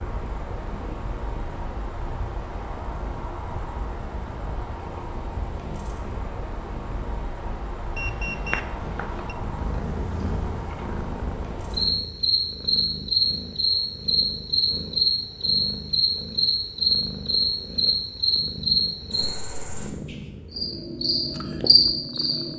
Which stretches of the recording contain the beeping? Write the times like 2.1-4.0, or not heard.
8.0-9.3.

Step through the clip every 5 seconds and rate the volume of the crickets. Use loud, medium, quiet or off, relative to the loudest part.
quiet, quiet, loud, loud, loud.